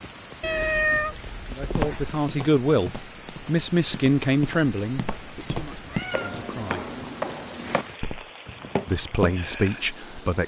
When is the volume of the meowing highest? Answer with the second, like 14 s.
1 s.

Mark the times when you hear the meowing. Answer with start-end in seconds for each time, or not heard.
0.4-2.1, 5.6-7.2.